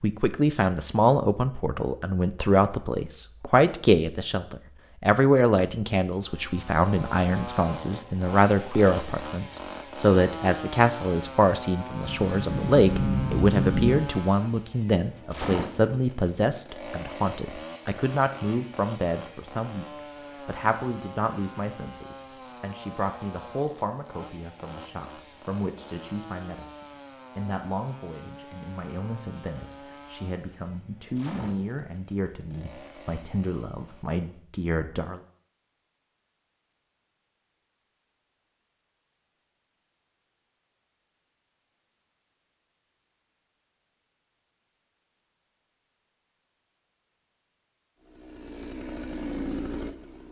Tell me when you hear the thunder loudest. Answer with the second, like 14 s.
14 s.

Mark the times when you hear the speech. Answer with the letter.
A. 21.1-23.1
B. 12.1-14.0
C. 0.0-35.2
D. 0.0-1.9
C.